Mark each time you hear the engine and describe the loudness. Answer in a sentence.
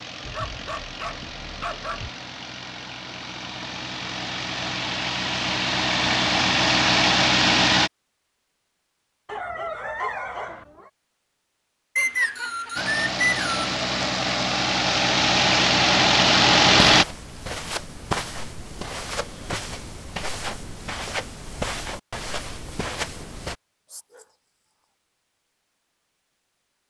You can hear the engine from 0.0 to 7.9 s, getting louder; and from 12.8 to 17.1 s, getting louder.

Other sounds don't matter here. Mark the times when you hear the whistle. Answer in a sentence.
You can hear the whistle from 11.9 to 13.7 s.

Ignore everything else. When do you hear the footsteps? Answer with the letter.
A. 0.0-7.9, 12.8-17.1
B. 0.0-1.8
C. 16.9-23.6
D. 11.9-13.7
C.